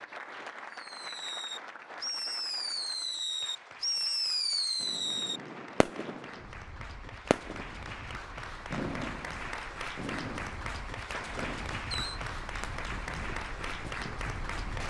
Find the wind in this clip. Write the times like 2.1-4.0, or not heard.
4.8-14.8.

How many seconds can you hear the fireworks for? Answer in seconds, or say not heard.
10 s.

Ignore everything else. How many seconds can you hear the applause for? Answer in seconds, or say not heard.
15 s.